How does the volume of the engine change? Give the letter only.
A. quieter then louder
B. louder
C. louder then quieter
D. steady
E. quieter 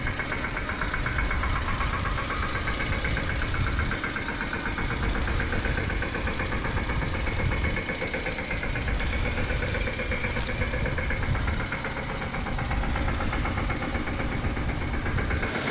D.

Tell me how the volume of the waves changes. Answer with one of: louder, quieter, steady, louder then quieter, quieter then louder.
steady.